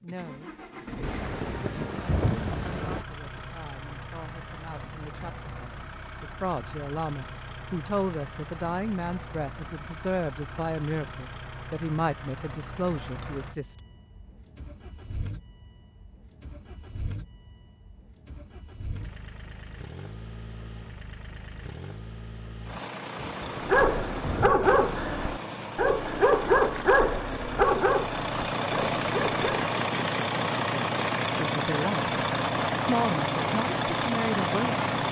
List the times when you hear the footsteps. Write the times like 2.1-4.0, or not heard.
not heard.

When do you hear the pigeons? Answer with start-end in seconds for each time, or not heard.
not heard.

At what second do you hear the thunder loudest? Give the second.
2 s.